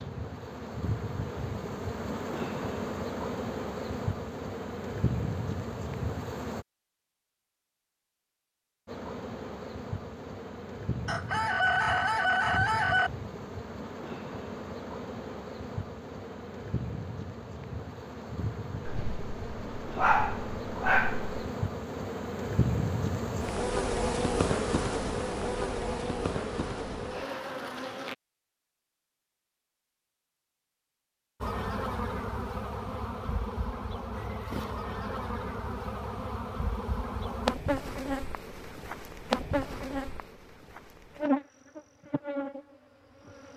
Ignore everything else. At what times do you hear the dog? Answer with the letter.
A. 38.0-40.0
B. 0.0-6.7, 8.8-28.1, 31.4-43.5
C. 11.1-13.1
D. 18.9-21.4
D.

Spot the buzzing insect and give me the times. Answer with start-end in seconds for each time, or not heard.
0.0-6.7, 8.8-28.1, 31.4-43.5.